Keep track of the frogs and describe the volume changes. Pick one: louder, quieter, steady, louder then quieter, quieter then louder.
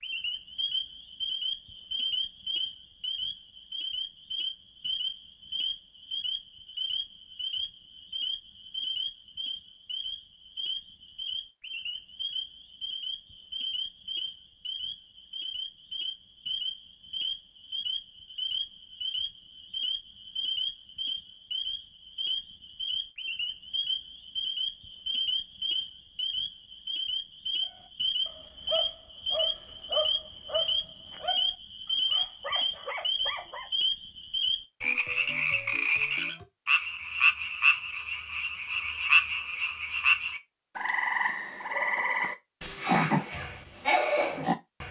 louder.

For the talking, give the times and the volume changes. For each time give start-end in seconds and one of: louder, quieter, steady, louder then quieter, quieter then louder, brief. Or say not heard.
not heard.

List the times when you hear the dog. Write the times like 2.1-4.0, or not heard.
27.7-33.7.